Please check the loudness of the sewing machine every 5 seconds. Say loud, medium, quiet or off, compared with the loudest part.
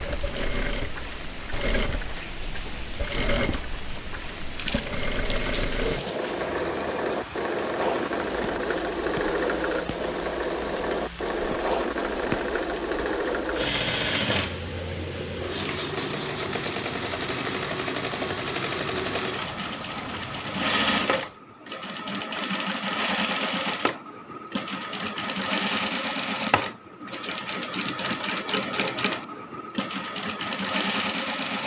medium, loud, loud, loud, loud, loud, loud.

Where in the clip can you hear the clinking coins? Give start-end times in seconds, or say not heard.
4.5-6.2.